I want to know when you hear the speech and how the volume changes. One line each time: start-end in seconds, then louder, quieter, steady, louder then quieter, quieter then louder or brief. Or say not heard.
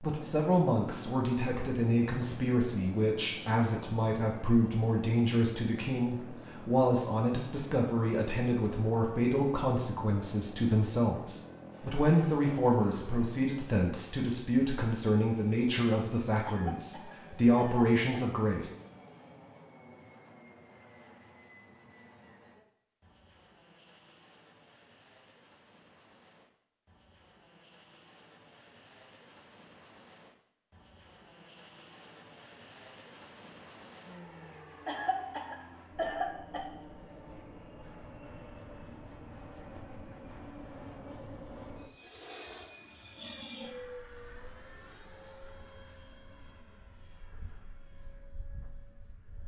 0.0-18.7 steady.